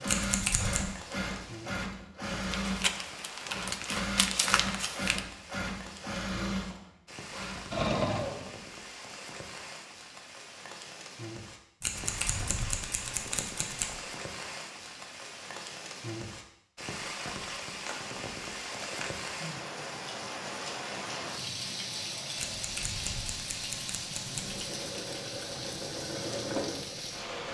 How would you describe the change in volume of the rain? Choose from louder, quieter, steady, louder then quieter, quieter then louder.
louder.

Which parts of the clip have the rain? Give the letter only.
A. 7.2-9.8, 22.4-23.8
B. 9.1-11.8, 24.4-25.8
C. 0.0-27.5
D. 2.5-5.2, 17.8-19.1
C.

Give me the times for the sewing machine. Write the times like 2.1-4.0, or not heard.
0.0-8.6, 24.3-27.5.